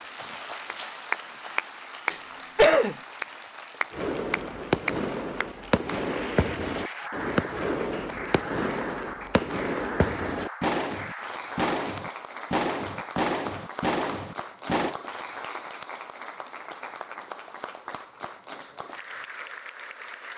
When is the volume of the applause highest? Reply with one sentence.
The volume of the applause peaks at 2 seconds.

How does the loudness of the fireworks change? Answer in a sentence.
The volume of the fireworks stays about the same.